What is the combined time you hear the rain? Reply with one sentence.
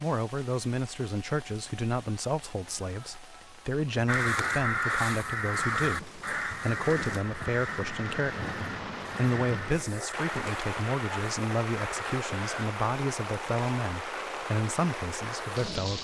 You can hear the rain for 16 seconds altogether.